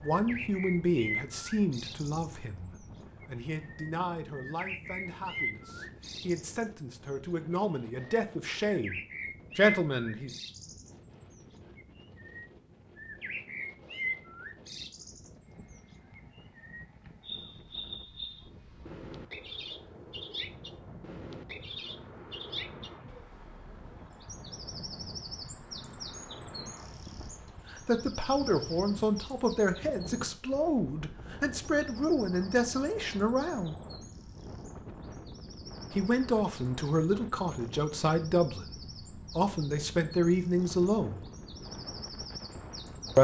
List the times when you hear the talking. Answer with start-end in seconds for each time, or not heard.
0.0-10.3, 27.7-33.8, 35.9-41.2.